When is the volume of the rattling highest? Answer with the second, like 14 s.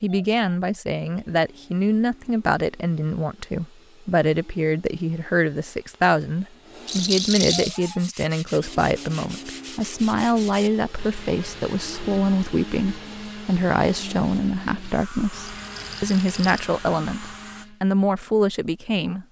7 s.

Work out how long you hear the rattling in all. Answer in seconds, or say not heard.
2 s.